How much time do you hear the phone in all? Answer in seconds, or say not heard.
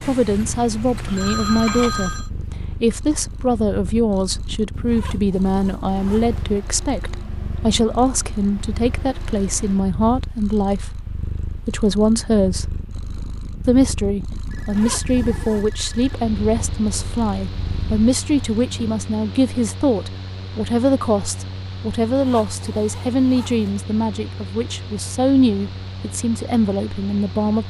4 s.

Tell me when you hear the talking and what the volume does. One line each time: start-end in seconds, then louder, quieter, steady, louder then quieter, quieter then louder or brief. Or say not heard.
0.0-12.8 steady
13.7-27.6 steady.